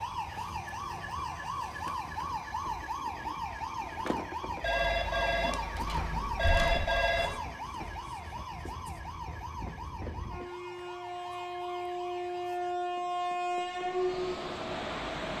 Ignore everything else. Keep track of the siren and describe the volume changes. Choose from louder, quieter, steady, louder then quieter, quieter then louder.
quieter.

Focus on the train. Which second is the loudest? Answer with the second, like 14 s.
14 s.